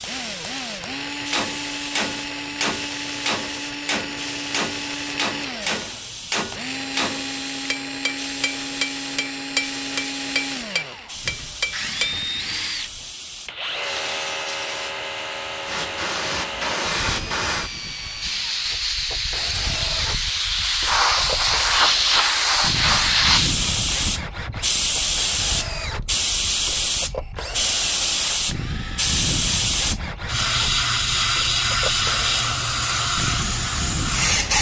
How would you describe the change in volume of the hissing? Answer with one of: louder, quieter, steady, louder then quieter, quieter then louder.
louder.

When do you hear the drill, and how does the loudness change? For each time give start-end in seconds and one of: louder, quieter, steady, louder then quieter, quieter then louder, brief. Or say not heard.
0.0-34.5 steady.